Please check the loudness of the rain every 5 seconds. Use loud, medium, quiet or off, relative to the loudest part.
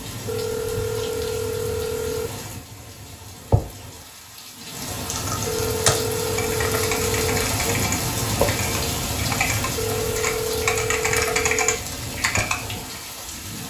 medium, loud, medium.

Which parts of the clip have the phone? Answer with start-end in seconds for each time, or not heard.
0.2-2.3, 5.5-7.5, 9.8-11.8.